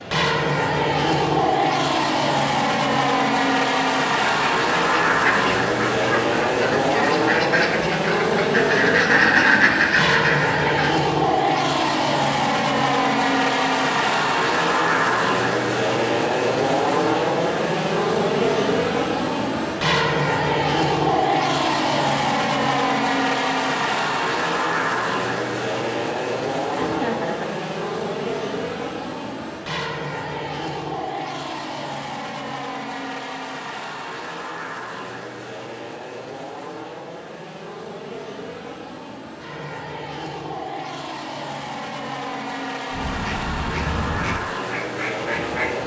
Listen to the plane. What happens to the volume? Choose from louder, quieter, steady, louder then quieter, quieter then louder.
quieter.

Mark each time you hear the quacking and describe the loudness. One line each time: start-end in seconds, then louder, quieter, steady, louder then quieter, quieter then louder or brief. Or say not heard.
4.2-10.9 louder
42.9-45.8 brief.